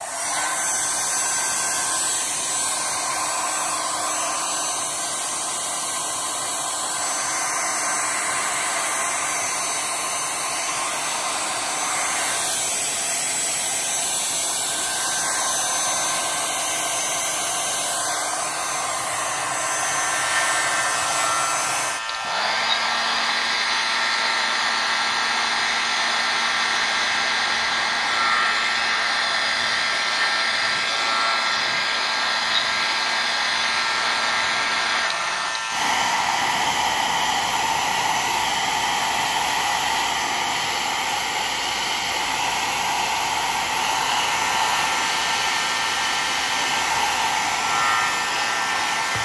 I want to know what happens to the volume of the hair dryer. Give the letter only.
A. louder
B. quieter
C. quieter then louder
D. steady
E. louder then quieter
D.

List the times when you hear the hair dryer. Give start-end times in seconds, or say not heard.
0.0-49.1.